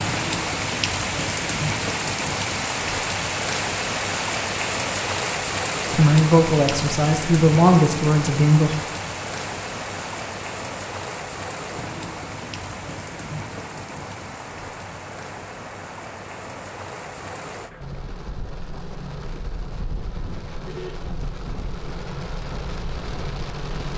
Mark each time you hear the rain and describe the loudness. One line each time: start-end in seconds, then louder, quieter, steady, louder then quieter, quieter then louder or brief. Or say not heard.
0.0-23.9 quieter.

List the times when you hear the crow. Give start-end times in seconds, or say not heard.
not heard.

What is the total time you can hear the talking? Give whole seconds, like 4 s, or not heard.
3 s.